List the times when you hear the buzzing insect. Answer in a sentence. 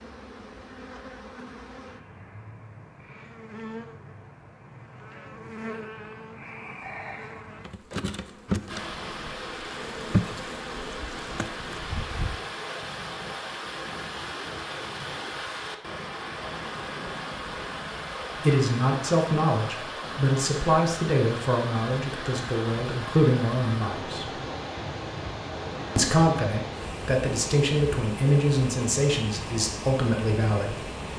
You can hear the buzzing insect from 0.0 to 12.3 s.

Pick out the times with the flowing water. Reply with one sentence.
You can hear the flowing water from 8.7 to 31.1 s.